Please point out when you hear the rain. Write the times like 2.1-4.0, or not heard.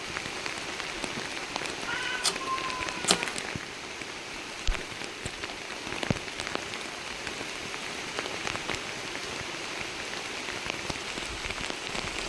0.0-12.2.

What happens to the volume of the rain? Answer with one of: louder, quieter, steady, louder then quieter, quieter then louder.
steady.